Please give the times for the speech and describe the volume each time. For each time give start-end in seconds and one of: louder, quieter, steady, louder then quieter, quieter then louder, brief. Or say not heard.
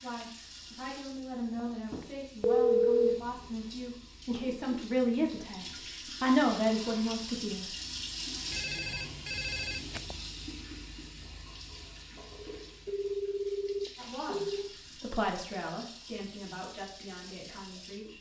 0.0-7.8 louder
13.9-18.1 louder then quieter.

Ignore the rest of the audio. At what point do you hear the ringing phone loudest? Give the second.
3 s.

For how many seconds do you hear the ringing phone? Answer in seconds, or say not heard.
4 s.